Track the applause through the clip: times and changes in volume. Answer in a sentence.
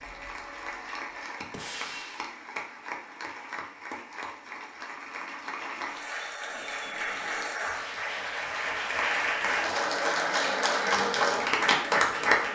You can hear the applause from 0.0 to 12.5 s, getting louder.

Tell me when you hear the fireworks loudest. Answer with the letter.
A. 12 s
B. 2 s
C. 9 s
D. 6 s
B.